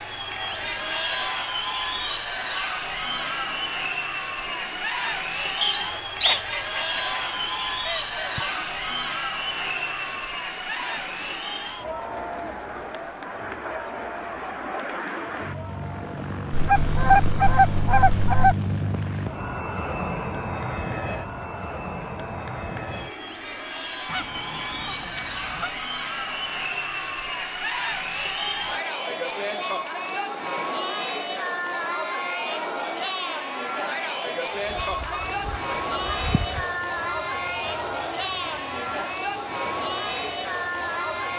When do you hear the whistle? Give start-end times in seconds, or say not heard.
5.6-6.4.